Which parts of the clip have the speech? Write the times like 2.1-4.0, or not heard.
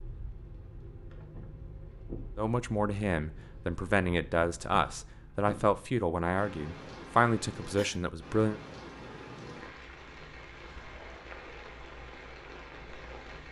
2.4-8.6.